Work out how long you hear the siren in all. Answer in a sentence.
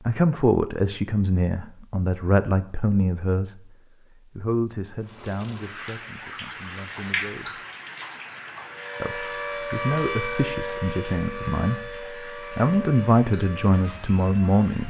You can hear the siren for 6 seconds altogether.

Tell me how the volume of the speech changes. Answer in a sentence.
The loudness of the speech goes down, then up.